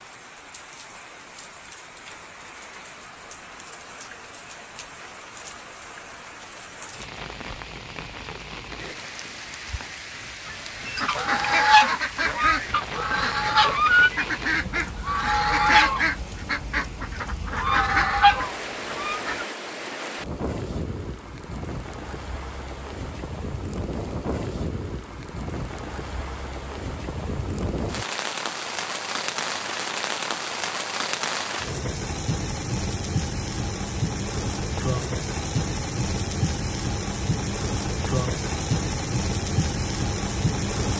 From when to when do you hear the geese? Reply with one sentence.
You can hear the geese from 10.4 to 19.4 s.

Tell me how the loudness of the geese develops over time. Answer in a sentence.
The loudness of the geese stays about the same.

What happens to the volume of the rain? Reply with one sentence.
The volume of the rain goes up.